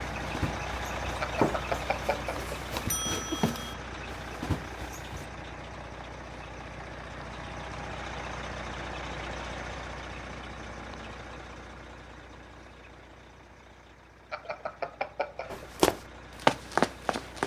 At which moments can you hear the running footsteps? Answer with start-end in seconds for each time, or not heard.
0.2-5.2, 15.5-17.4.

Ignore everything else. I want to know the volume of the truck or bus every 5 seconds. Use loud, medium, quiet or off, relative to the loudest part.
loud, loud, medium, medium.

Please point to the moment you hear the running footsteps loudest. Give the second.
17 s.